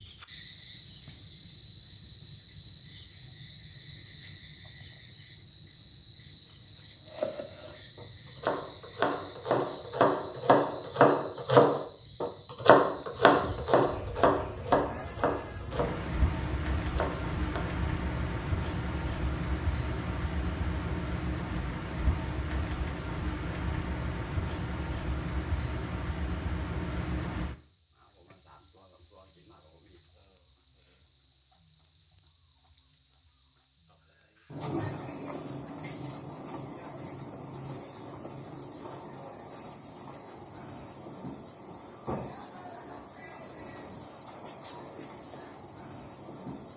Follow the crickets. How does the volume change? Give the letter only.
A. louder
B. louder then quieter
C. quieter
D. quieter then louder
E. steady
C.